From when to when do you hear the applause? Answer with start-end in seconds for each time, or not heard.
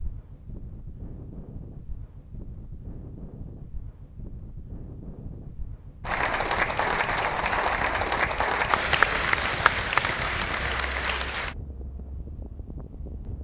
6.0-11.6.